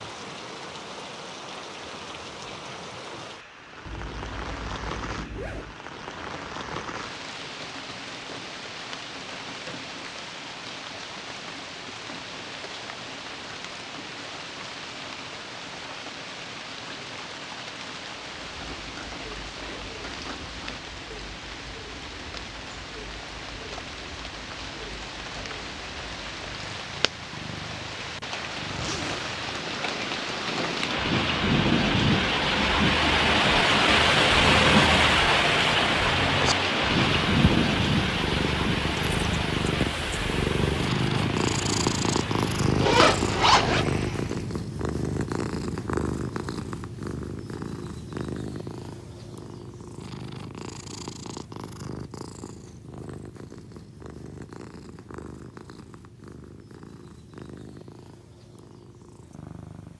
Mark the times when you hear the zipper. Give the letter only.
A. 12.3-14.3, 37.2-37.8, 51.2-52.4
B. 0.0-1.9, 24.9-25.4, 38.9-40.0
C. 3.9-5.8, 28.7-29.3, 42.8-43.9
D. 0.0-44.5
C.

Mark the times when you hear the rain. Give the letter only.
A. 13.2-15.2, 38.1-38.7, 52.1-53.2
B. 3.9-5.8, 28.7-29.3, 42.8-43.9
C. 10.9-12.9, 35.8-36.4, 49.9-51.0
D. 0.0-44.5
D.